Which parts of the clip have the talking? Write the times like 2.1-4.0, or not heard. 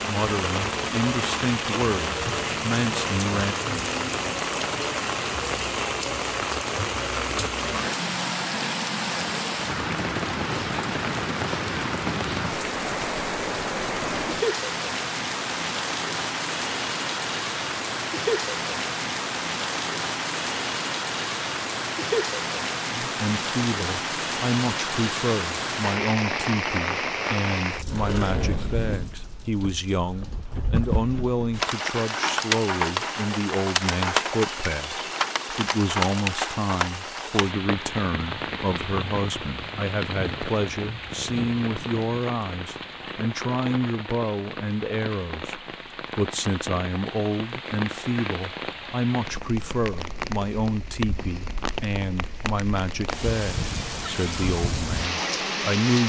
0.1-3.5, 22.9-56.0.